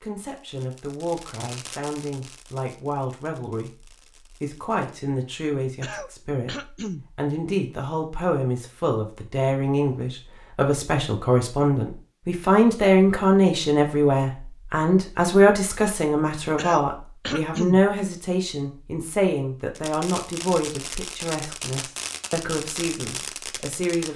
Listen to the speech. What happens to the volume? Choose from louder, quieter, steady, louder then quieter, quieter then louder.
louder then quieter.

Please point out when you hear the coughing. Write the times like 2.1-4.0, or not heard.
5.8-7.0, 16.6-17.8.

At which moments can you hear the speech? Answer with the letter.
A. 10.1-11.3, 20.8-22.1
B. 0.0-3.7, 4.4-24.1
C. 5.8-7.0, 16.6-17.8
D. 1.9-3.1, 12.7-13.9
B.